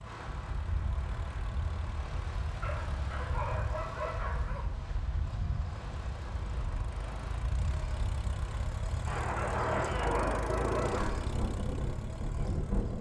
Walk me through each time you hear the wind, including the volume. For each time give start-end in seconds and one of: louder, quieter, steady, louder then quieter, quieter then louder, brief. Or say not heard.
0.0-12.9 louder.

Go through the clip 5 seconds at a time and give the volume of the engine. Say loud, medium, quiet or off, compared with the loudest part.
medium, loud, loud.